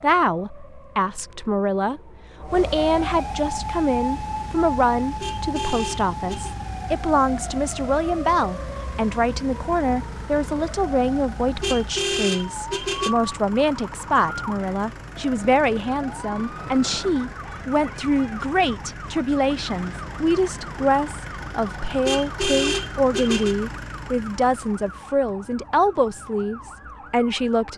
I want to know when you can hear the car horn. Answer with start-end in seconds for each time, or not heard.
5.2-6.5, 11.6-13.2, 22.1-23.6.